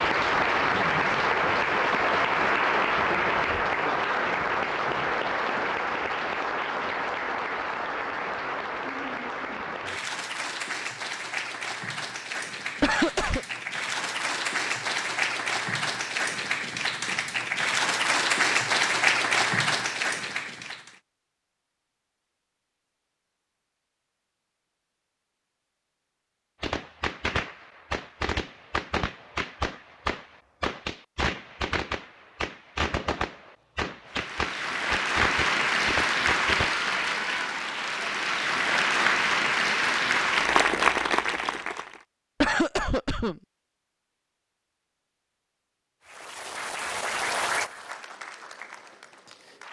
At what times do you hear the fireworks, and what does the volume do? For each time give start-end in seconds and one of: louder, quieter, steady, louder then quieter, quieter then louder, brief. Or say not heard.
26.6-36.9 steady.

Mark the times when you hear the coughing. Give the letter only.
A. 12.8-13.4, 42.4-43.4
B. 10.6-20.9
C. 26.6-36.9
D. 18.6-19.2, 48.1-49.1
A.